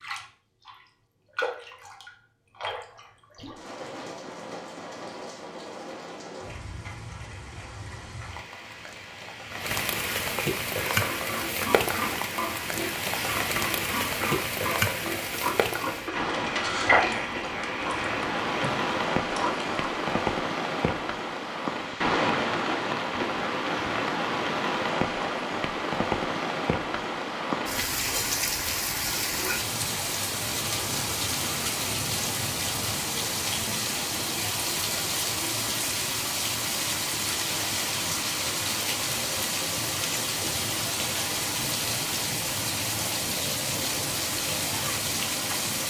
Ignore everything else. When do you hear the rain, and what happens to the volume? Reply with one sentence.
You can hear the rain from 0.0 to 45.8 s, getting louder.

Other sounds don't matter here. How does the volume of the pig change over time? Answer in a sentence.
The loudness of the pig goes up, then down.